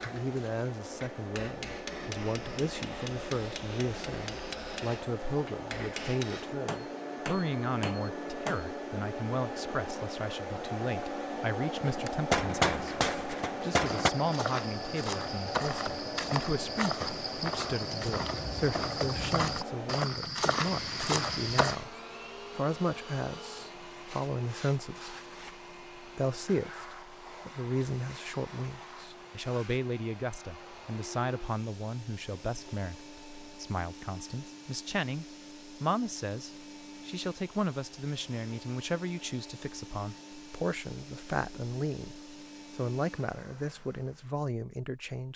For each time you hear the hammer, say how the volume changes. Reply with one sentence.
You can hear the hammer from 0.0 to 8.7 s, at a steady volume; and briefly from 11.8 to 14.1 s.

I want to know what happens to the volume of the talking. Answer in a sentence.
The volume of the talking stays about the same.